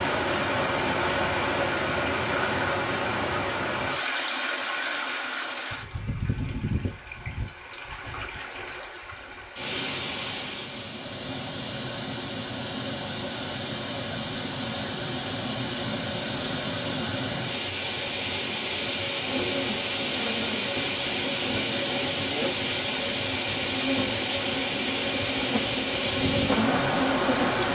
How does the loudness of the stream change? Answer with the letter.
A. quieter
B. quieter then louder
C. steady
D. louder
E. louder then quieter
B.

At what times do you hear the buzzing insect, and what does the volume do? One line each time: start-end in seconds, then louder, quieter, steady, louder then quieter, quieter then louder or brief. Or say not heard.
19.2-27.6 louder.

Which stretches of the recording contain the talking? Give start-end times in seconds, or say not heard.
26.6-27.7.